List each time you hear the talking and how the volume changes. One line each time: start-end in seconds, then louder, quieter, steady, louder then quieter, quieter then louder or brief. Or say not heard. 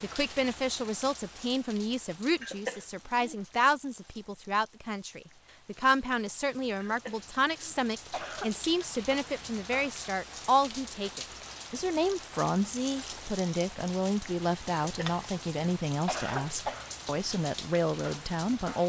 0.0-18.8 steady.